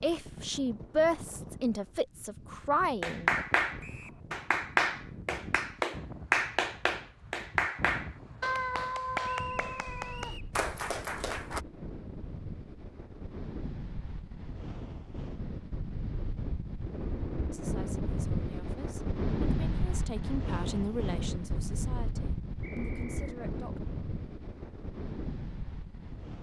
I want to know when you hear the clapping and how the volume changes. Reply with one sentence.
You can hear the clapping from 3.0 to 11.6 s, getting quieter.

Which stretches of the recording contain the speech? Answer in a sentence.
The speech can be heard from 0.0 to 3.5 s and from 17.5 to 23.8 s.